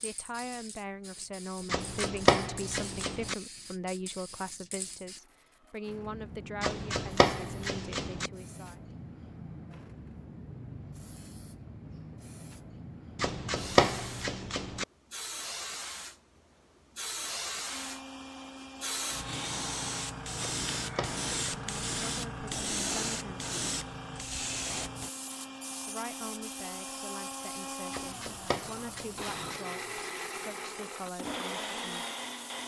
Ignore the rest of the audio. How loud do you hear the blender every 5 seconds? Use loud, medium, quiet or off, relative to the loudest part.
off, off, off, medium, medium, loud, loud.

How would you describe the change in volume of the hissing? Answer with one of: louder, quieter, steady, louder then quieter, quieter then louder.
louder then quieter.